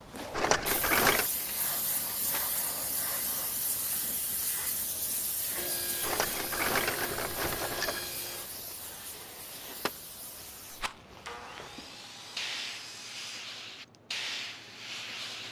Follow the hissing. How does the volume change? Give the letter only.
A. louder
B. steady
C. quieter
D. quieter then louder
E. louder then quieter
D.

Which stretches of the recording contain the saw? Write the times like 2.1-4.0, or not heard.
1.4-3.6, 5.5-8.5, 11.2-13.5.